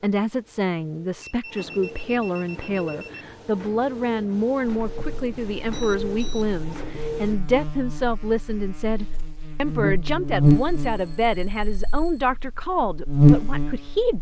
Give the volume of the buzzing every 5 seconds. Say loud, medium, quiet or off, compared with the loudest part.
off, quiet, loud.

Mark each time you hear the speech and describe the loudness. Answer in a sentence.
You can hear the speech from 0.0 to 14.1 s, at a steady volume.